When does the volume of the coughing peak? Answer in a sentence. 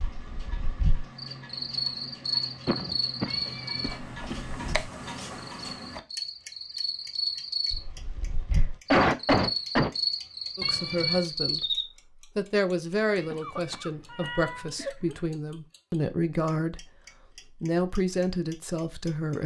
The volume of the coughing peaks at 9 seconds.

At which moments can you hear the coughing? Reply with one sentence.
You can hear the coughing from 2.6 to 4.3 s, from 8.5 to 9.9 s and from 13.3 to 15.2 s.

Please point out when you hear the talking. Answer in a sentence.
The talking can be heard from 10.6 to 16.9 s and from 17.6 to 19.4 s.